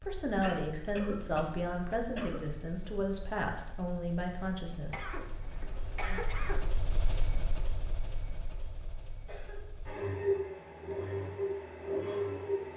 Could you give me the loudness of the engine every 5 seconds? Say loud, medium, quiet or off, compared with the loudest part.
quiet, quiet, loud.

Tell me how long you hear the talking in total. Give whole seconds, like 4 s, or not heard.
5 s.